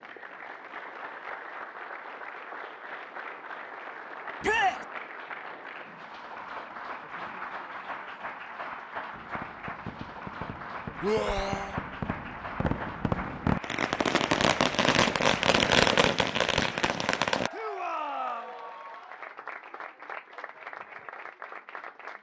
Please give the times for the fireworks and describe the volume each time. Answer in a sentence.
You can hear the fireworks from 9.1 to 17.5 s, getting louder.